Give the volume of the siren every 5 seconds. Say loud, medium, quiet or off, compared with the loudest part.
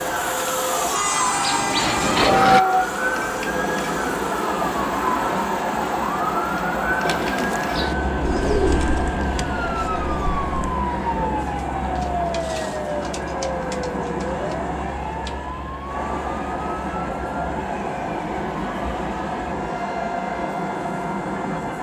loud, loud, loud, medium, medium.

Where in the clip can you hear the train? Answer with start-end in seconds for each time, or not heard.
0.0-21.7.